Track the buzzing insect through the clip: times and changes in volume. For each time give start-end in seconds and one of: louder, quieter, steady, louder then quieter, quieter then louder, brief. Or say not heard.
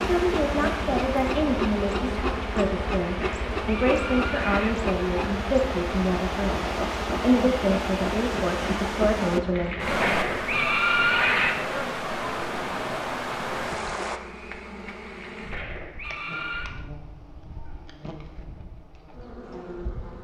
0.0-20.1 quieter.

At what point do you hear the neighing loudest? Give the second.
11 s.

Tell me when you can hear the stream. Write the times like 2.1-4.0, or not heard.
0.0-14.2.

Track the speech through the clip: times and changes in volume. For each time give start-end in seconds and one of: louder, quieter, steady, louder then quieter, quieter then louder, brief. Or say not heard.
0.0-9.8 steady.